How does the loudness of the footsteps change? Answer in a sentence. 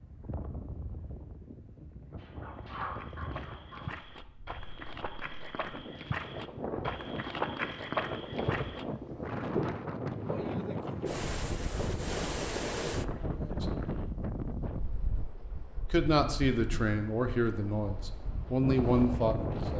The loudness of the footsteps goes up, then down.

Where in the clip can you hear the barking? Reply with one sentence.
You can hear the barking from 2.1 to 4.0 s.